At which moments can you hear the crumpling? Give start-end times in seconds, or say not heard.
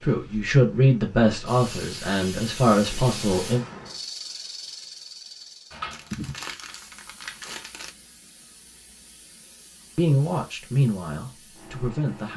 5.9-7.9.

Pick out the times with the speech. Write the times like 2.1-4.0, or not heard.
0.0-3.6, 9.9-12.3.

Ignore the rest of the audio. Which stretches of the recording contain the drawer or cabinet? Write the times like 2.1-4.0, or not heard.
not heard.